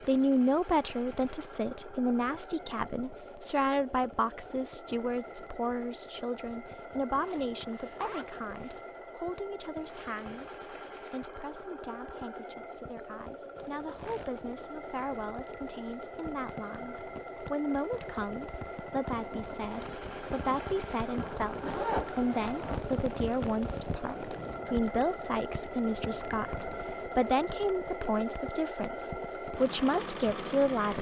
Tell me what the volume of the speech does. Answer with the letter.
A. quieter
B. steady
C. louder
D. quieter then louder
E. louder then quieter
D.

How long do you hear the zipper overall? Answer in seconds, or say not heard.
4 s.